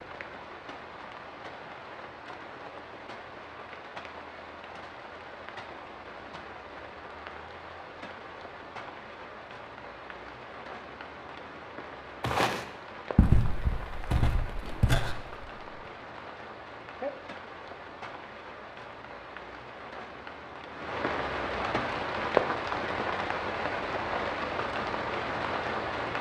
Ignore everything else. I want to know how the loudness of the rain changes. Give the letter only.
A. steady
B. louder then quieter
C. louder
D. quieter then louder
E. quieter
C.